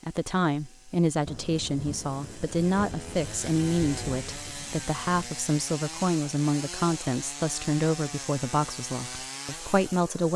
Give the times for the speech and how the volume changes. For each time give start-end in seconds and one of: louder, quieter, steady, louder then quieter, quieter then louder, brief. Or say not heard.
0.0-10.3 steady.